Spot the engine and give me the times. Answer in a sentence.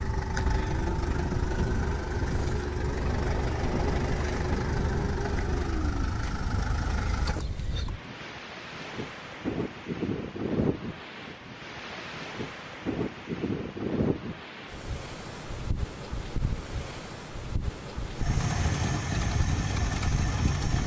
The engine can be heard from 0.0 to 8.0 s and from 18.1 to 20.8 s.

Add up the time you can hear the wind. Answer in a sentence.
The wind can be heard for 21 seconds in total.